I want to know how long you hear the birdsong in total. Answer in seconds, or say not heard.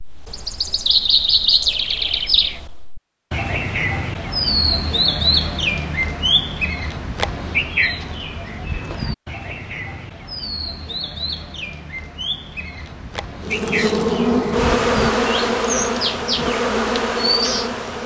18 s.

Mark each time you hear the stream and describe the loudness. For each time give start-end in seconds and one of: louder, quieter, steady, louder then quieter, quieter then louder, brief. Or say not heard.
not heard.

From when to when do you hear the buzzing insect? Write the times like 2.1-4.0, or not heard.
13.4-18.0.